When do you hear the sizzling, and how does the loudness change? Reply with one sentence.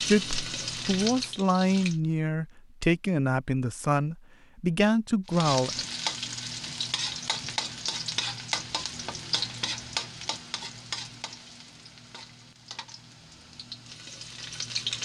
You can hear the sizzling briefly from 0.0 to 1.9 s; and from 5.2 to 15.0 s, getting quieter.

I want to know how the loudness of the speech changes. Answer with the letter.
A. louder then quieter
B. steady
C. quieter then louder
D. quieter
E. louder
B.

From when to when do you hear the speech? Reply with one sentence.
The speech can be heard from 0.1 to 5.8 s.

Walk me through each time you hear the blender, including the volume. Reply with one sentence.
You can't hear the blender here.